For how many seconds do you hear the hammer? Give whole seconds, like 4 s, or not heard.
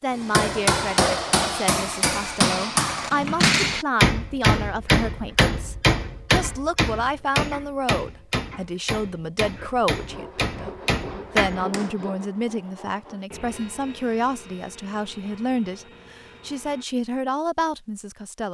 12 s.